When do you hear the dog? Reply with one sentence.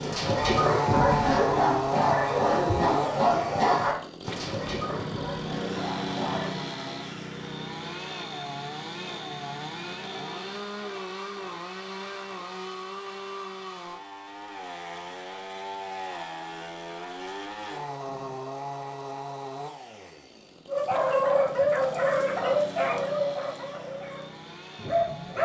The dog can be heard from 0.0 to 6.5 s and from 20.6 to 25.4 s.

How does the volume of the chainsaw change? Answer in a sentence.
The loudness of the chainsaw goes down.